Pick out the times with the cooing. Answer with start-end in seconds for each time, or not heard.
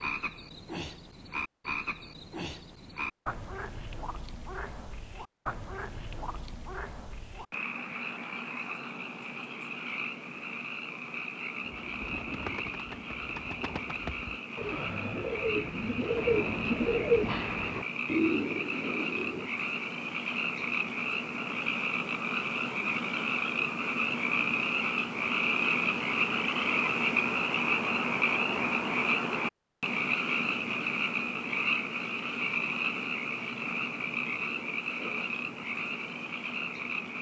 11.6-19.5.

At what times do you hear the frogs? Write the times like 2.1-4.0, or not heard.
0.0-37.1.